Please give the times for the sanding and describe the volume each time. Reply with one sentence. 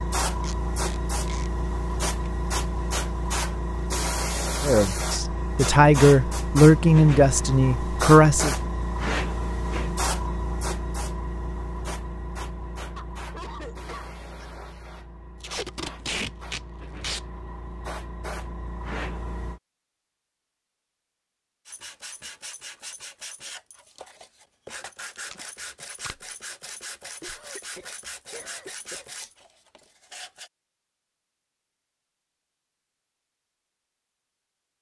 You can hear the sanding from 21.6 to 30.5 s, at a steady volume.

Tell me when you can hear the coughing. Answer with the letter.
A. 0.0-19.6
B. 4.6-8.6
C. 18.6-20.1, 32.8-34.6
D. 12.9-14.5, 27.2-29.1
D.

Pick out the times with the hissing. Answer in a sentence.
You can hear the hissing from 0.0 to 19.6 s.